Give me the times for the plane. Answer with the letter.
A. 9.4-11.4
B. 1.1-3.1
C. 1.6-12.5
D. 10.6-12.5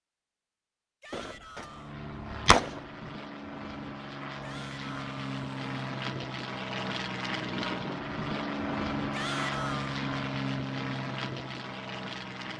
C.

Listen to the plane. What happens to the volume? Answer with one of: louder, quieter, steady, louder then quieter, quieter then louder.
louder.